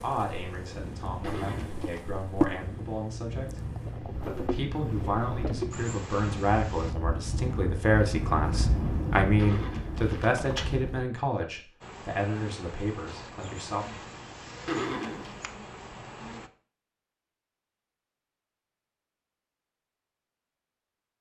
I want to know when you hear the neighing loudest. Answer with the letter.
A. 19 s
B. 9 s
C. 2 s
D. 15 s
D.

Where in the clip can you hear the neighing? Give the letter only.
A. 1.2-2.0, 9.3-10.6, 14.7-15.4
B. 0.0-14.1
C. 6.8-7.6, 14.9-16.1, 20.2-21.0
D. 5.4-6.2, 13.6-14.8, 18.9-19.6
A.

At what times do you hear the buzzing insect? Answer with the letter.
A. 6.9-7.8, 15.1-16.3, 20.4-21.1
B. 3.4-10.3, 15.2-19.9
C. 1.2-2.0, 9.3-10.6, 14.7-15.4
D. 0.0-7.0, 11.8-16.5
D.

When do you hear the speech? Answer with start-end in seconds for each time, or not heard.
0.0-14.1.